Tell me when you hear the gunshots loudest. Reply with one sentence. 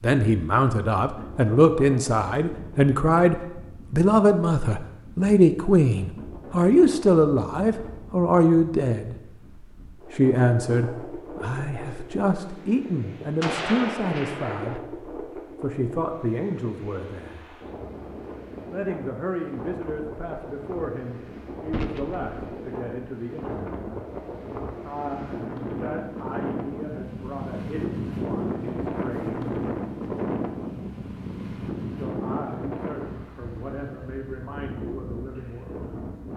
The volume of the gunshots peaks at 14 seconds.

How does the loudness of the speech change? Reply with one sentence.
The volume of the speech goes down.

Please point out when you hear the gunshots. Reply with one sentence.
You can hear the gunshots from 13.4 to 14.8 s and from 21.7 to 22.3 s.